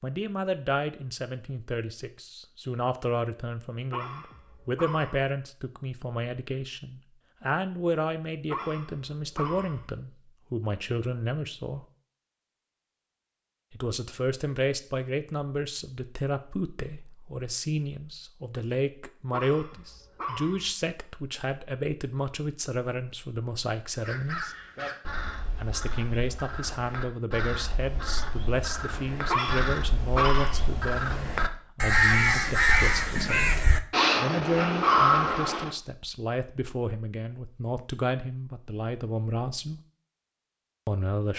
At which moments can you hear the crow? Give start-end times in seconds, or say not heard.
24.0-35.8.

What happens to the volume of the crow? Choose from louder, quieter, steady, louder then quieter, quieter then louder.
louder.